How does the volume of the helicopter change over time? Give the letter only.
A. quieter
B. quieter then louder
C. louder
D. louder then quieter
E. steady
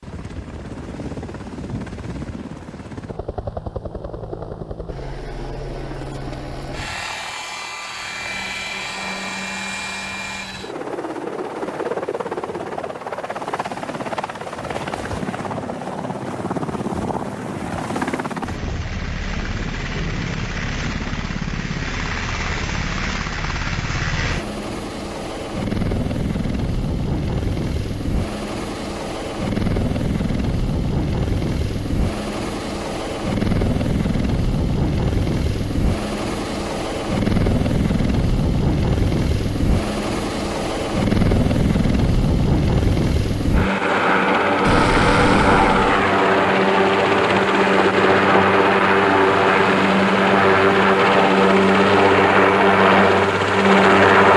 C.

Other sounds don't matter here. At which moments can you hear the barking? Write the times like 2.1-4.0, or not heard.
not heard.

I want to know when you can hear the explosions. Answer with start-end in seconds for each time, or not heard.
44.6-46.0.